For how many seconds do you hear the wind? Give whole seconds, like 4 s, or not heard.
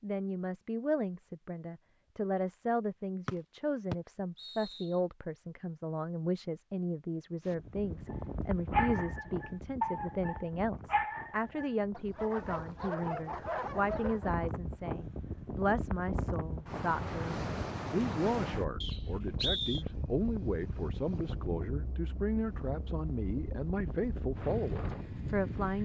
18 s.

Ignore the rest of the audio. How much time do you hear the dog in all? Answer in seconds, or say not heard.
6 s.